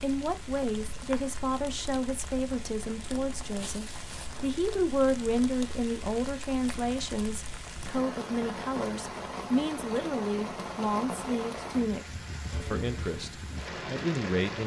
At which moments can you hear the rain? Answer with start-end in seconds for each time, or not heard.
0.0-14.6.